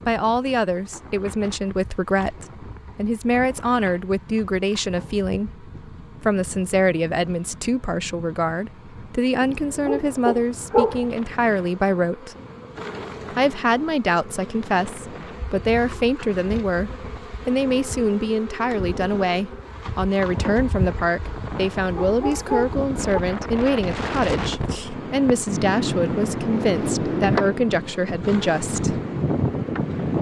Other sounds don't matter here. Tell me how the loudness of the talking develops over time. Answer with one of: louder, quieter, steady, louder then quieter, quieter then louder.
steady.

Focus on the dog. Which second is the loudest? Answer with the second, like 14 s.
11 s.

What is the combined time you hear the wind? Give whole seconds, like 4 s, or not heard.
30 s.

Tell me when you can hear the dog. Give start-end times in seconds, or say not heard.
9.4-11.1, 21.9-23.2.